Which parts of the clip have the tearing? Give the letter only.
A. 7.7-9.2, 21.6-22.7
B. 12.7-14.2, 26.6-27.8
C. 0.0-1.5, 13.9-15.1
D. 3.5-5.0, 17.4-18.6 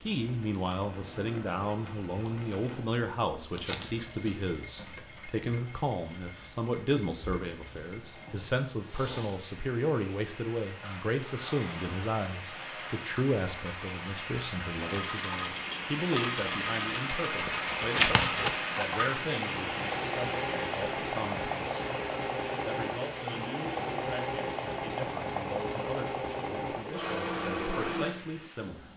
D.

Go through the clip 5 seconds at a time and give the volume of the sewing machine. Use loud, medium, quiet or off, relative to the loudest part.
quiet, quiet, medium, loud, loud, loud.